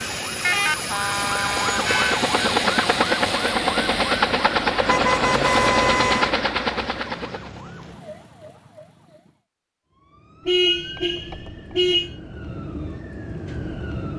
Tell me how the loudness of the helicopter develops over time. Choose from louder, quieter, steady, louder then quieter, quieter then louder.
louder.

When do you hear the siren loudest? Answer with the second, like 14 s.
2 s.